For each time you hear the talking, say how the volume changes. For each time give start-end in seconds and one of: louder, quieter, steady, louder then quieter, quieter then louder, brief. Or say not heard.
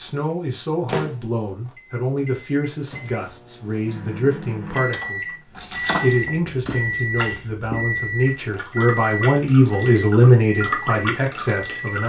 0.0-12.0 louder.